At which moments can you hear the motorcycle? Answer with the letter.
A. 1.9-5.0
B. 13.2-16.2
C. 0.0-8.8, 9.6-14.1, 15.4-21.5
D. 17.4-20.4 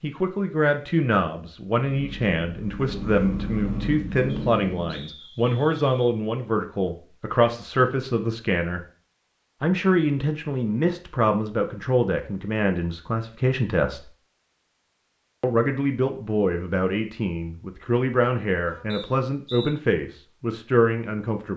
A.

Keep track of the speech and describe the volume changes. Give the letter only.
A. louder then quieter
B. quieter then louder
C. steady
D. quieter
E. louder
C.